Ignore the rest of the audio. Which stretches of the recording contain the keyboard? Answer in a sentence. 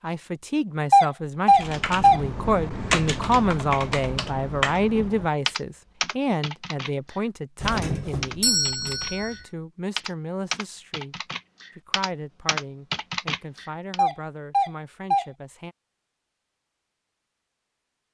You can hear the keyboard from 1.5 to 13.9 s.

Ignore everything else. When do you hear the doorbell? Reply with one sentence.
The doorbell can be heard from 0.9 to 2.2 s, from 7.6 to 9.3 s and from 13.9 to 15.2 s.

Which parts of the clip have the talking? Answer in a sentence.
The talking can be heard from 0.0 to 11.2 s and from 11.8 to 15.8 s.